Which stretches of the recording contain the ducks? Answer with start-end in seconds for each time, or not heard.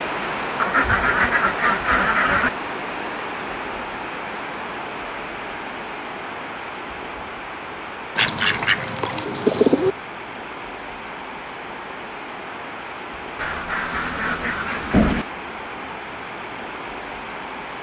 0.6-2.5, 8.2-9.9, 13.3-15.2.